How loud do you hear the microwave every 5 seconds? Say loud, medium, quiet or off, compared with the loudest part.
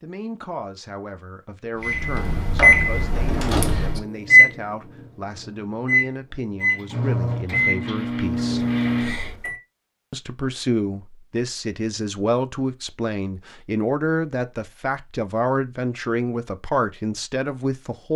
loud, medium, off, off.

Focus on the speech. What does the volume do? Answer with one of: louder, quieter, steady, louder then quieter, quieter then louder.
louder.